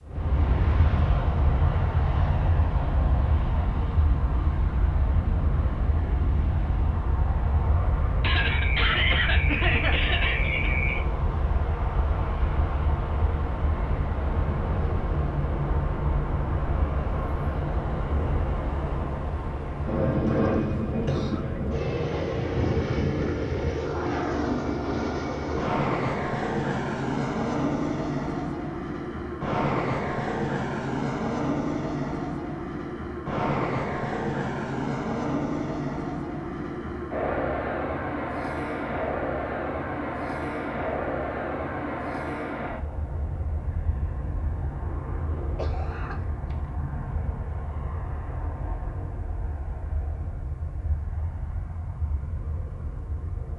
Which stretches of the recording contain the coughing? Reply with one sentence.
The coughing can be heard from 8.2 to 11.1 s, from 20.1 to 21.4 s and from 45.5 to 46.7 s.